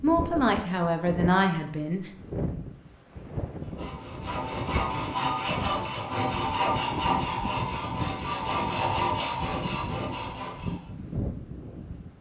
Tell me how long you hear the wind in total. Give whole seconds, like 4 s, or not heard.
12 s.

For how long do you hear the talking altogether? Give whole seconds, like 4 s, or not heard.
2 s.